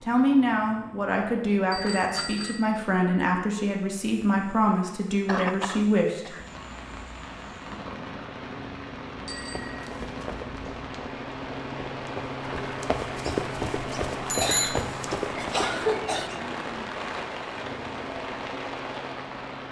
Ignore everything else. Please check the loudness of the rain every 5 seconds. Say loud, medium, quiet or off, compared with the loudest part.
off, medium, loud, loud.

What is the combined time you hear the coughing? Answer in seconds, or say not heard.
3 s.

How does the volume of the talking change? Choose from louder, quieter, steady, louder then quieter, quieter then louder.
steady.